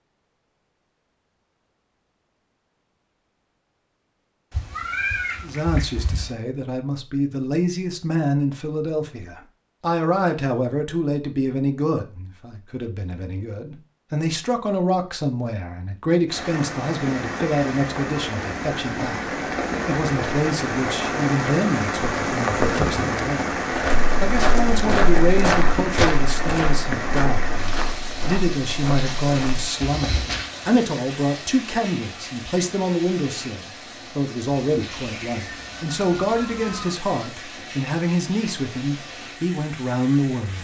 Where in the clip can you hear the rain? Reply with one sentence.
The rain can be heard from 16.2 to 40.5 s.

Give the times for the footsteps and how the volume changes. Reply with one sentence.
The footsteps can be heard from 23.7 to 30.5 s, getting quieter.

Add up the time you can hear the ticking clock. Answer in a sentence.
You can't hear the ticking clock here.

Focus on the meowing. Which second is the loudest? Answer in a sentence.
The loudest moment of the meowing is at 5 seconds.